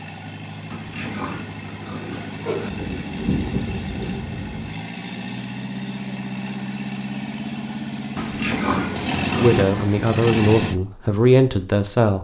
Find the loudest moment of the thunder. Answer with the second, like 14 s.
3 s.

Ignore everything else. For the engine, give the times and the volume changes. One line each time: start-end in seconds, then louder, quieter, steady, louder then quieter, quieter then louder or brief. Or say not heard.
0.0-10.8 louder.